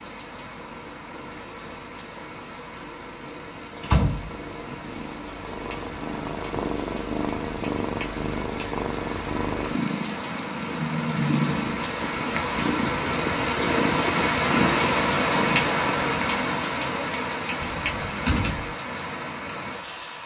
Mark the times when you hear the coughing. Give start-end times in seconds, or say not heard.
not heard.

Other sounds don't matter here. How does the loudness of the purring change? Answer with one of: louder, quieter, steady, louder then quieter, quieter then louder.
louder.